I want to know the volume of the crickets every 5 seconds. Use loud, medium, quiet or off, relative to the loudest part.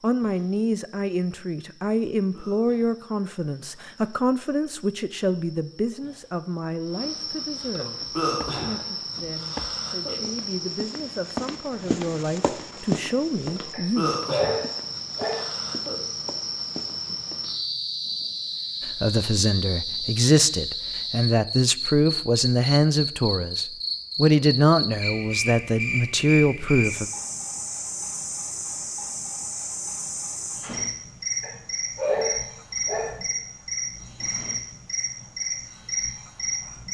quiet, loud, loud, loud, loud, loud, loud, loud.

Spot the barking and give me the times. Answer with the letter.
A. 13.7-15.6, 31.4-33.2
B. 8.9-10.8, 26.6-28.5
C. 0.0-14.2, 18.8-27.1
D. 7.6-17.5
A.